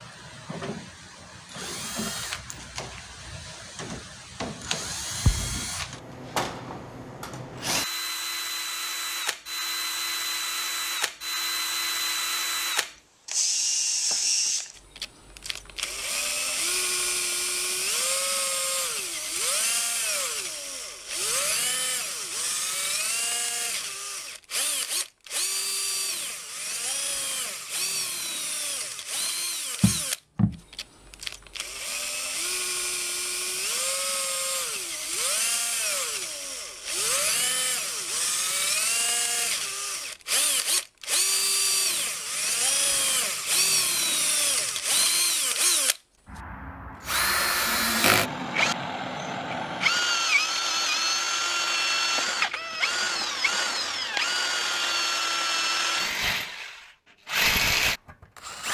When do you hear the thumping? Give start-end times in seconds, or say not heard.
5.2-5.7, 29.8-30.6.